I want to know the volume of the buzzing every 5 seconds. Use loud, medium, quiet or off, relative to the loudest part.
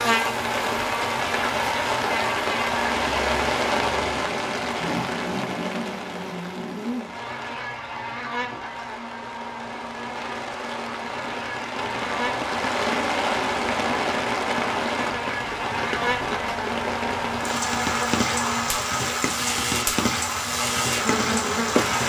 loud, medium, medium, loud, loud.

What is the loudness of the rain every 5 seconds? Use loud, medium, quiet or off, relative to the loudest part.
loud, medium, loud, loud, loud.